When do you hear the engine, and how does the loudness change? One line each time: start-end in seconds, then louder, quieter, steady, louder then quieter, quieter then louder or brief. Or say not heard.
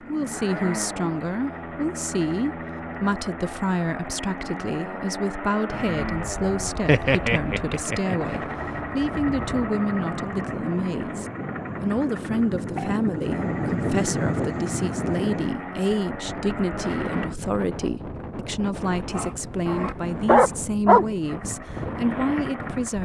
0.0-17.4 steady
21.2-23.0 brief.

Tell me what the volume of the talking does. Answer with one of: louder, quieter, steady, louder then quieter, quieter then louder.
steady.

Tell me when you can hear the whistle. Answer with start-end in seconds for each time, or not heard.
not heard.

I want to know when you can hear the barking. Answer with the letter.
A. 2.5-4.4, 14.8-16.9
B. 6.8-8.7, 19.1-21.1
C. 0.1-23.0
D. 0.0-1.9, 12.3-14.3
B.